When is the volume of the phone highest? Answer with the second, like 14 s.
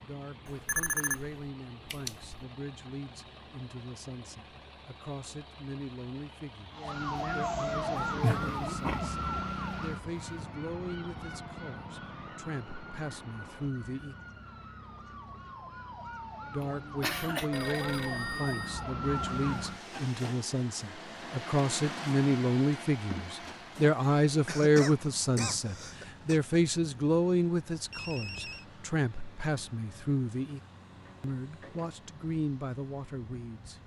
1 s.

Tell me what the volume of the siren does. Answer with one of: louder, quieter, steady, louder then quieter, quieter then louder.
quieter then louder.